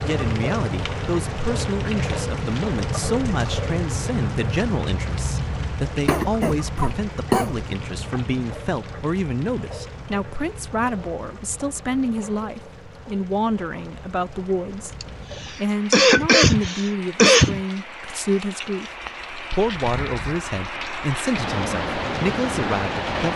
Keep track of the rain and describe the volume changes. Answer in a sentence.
The loudness of the rain goes down, then up.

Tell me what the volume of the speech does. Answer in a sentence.
The volume of the speech stays about the same.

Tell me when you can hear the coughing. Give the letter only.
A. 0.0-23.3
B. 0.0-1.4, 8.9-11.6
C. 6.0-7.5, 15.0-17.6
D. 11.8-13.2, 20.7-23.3
C.